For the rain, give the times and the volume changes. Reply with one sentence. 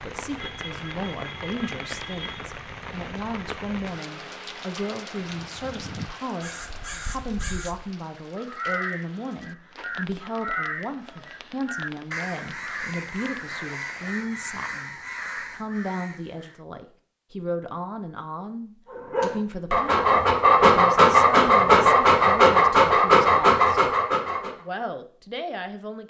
The rain can be heard from 0.0 to 14.2 s, getting quieter.